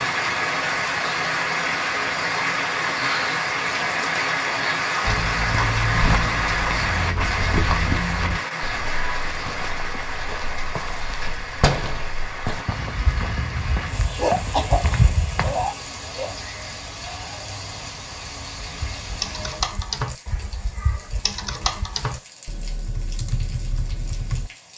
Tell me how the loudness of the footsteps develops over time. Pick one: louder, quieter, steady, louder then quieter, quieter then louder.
quieter then louder.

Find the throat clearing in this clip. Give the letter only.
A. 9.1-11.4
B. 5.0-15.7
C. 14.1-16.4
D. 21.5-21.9
C.